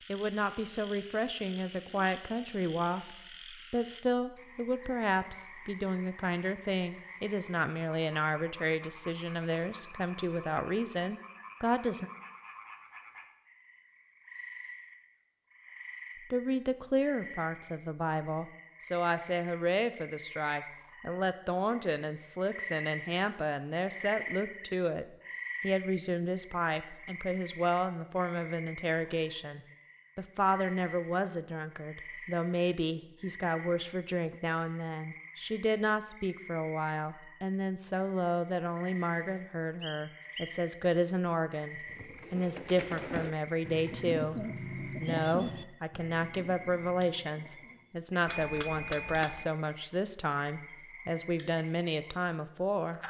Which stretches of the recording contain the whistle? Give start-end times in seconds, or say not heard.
39.8-40.6.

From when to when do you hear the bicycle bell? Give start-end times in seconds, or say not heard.
48.2-49.5.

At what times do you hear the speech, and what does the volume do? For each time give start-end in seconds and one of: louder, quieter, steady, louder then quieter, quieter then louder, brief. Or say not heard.
0.1-12.1 steady
16.3-53.0 steady.